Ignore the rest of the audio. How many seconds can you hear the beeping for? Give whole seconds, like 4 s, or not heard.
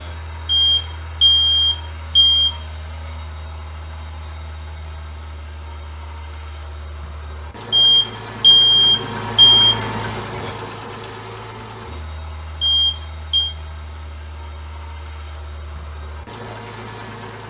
5 s.